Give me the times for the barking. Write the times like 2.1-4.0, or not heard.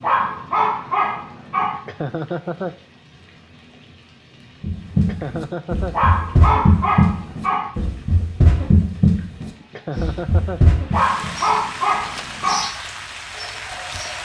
0.0-1.8, 5.9-7.7, 10.9-12.7.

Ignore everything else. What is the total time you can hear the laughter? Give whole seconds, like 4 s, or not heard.
3 s.